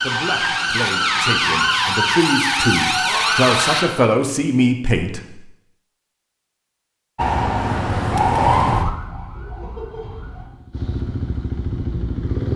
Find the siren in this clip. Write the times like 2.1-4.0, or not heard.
0.0-4.0, 7.2-10.4.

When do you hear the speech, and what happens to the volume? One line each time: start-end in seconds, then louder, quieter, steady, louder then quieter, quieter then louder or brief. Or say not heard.
0.0-5.2 louder.